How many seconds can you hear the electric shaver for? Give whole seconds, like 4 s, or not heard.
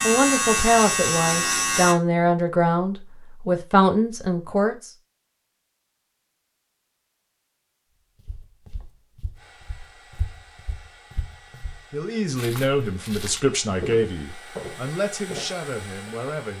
2 s.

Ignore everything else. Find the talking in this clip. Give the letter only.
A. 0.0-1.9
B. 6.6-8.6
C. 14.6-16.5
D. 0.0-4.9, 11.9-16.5
D.